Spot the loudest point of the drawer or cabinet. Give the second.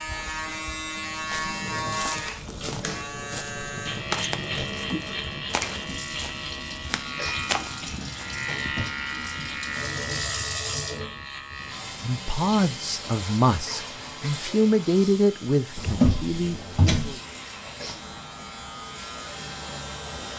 16 s.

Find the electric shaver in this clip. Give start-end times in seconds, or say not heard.
0.0-20.3.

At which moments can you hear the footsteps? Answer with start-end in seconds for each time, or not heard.
1.1-8.2.